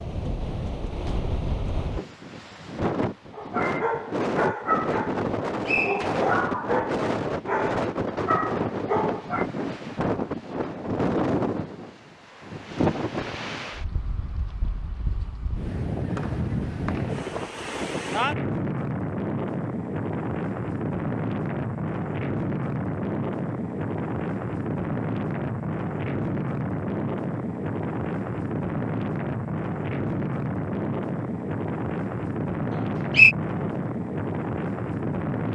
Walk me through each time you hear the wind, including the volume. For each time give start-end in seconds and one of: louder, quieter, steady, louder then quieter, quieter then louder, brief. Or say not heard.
0.0-35.4 steady.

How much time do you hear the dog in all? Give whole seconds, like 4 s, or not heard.
6 s.